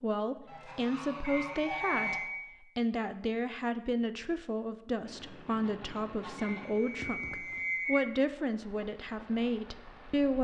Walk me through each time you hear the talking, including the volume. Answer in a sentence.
The talking can be heard from 0.0 to 10.3 s, at a steady volume.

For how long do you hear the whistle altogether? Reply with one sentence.
You can hear the whistle for 3 seconds altogether.